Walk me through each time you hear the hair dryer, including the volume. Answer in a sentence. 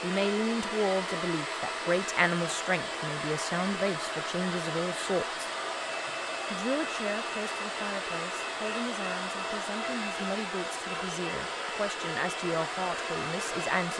You can hear the hair dryer from 0.0 to 13.9 s, at a steady volume.